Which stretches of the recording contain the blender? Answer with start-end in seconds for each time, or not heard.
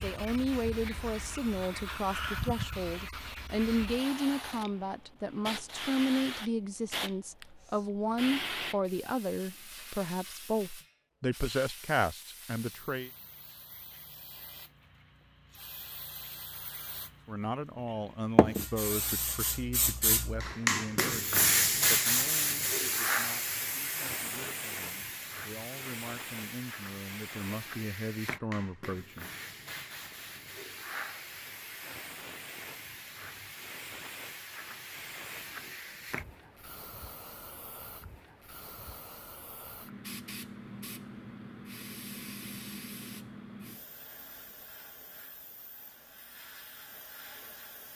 not heard.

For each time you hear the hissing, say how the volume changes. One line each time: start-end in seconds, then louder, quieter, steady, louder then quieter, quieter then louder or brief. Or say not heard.
0.0-47.9 louder then quieter.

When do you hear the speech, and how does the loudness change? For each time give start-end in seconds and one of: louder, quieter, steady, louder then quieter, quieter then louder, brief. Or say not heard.
0.0-13.1 steady
17.2-29.3 quieter then louder.